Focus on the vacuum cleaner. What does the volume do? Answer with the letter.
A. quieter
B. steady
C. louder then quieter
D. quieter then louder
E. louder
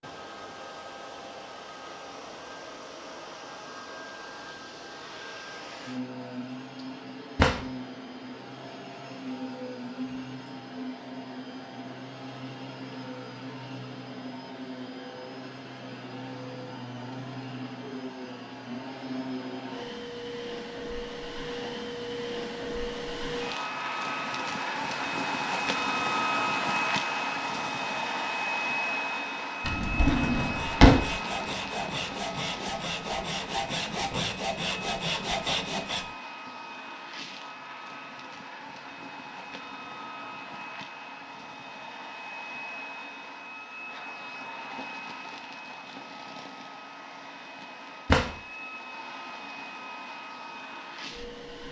C.